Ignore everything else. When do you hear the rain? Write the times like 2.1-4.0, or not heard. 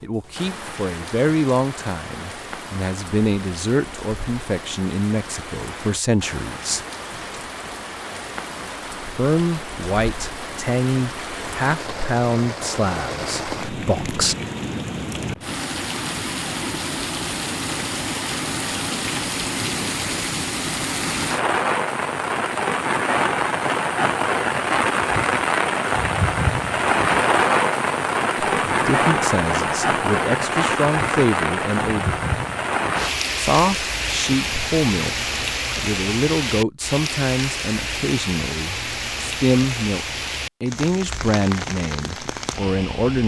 0.0-43.2.